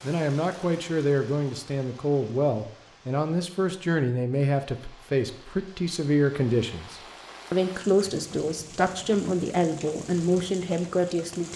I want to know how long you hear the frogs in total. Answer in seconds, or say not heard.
not heard.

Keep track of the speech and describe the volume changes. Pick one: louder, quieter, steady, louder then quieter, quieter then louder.
steady.